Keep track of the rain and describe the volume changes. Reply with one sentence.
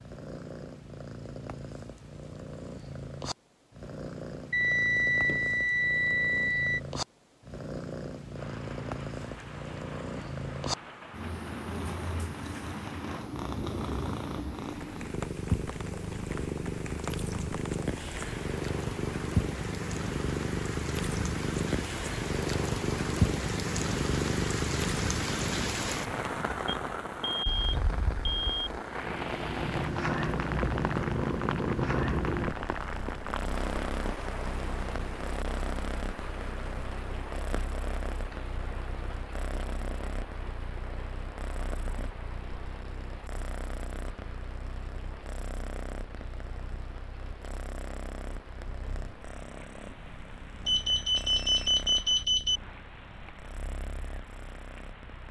The volume of the rain goes up, then down.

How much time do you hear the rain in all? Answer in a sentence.
The rain can be heard for 47 seconds in total.